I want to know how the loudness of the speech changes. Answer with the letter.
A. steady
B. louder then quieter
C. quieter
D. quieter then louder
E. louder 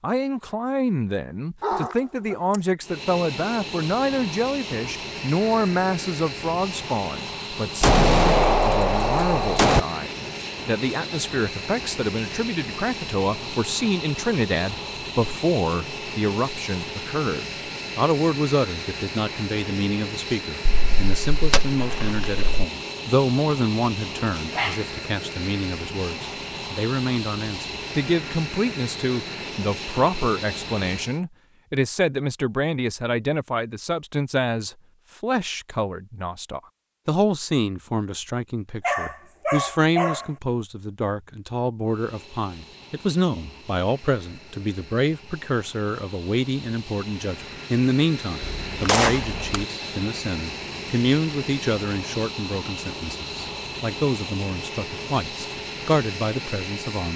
A.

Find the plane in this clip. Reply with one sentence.
The plane can be heard from 2.8 to 31.2 s and from 41.9 to 57.1 s.